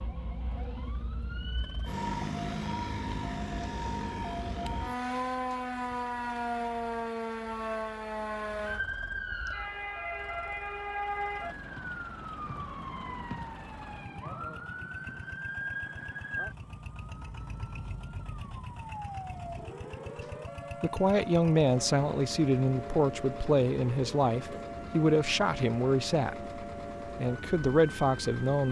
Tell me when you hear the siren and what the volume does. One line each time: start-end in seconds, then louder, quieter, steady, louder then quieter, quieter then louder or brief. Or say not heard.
0.0-28.6 quieter.